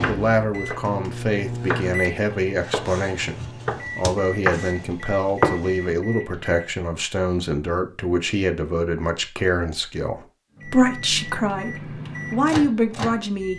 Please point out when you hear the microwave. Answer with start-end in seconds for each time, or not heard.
0.0-6.7, 10.6-13.5.